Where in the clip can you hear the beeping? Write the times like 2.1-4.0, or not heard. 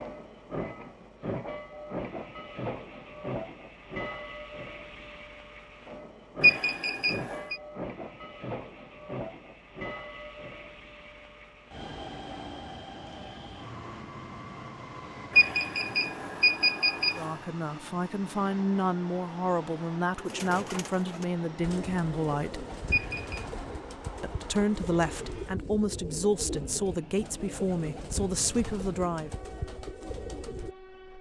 6.4-7.5, 15.3-17.3, 22.9-23.4.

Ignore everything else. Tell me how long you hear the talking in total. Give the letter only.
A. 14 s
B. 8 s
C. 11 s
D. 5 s
C.